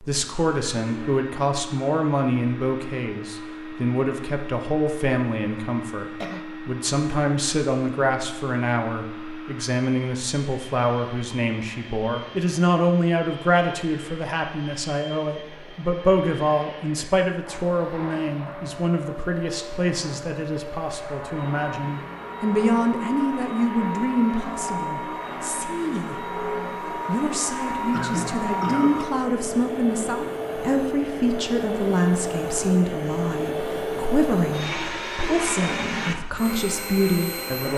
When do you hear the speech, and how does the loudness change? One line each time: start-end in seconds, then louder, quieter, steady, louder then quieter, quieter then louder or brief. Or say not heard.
0.0-26.2 steady
27.1-37.7 steady.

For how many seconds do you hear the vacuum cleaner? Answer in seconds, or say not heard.
38 s.